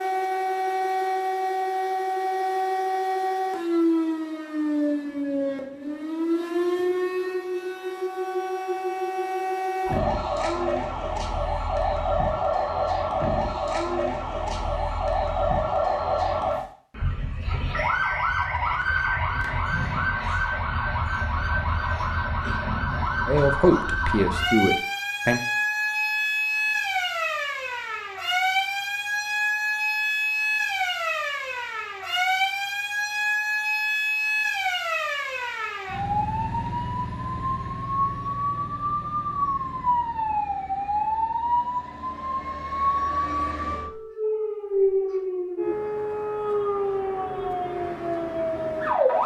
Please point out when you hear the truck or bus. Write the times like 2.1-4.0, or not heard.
not heard.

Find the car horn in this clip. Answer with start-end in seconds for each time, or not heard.
not heard.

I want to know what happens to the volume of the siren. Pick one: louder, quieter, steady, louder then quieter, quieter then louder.
steady.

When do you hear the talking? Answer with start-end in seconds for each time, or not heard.
23.2-25.4.